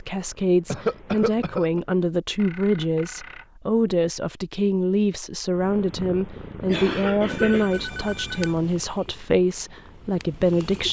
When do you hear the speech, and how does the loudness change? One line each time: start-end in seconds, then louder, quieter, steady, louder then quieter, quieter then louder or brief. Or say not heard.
0.0-10.8 steady.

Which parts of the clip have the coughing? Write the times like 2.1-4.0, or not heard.
0.7-1.8, 6.7-7.7.